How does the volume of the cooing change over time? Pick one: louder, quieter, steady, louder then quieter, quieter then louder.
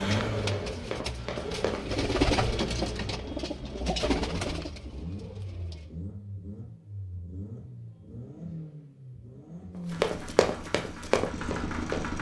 louder then quieter.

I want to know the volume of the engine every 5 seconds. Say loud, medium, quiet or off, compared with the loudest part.
loud, medium, loud.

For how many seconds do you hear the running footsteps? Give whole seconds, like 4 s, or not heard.
4 s.